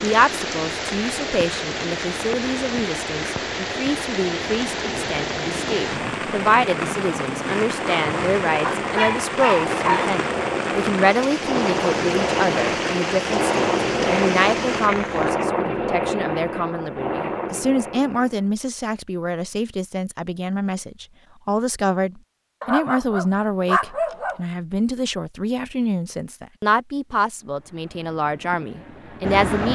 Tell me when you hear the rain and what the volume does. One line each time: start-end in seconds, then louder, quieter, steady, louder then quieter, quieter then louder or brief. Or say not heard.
0.0-15.4 steady.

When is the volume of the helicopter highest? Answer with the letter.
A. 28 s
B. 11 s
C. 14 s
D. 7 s
C.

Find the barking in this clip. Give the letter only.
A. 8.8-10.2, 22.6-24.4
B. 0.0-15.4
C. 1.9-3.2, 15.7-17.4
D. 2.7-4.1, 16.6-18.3
A.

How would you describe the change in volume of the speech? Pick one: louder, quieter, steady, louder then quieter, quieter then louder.
steady.